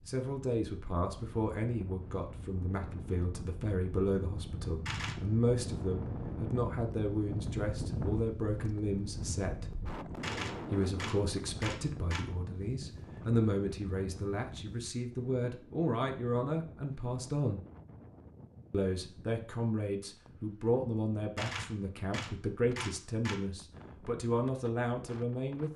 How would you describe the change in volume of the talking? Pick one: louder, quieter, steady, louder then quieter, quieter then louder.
steady.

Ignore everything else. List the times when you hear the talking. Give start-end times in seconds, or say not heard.
0.1-9.7, 10.7-17.6, 18.7-25.7.